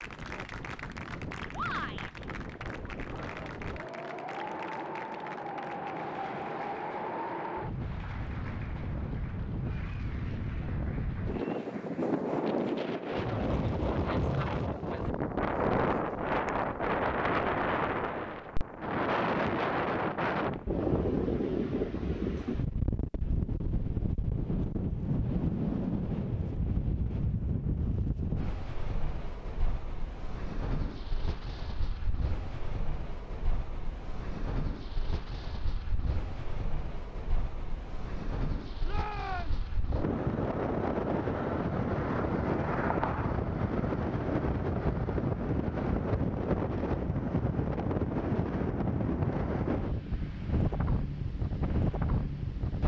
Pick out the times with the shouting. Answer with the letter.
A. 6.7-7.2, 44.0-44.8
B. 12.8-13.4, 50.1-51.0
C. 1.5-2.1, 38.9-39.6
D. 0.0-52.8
C.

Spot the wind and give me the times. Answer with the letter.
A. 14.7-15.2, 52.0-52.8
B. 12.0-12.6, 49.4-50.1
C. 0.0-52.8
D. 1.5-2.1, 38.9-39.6
C.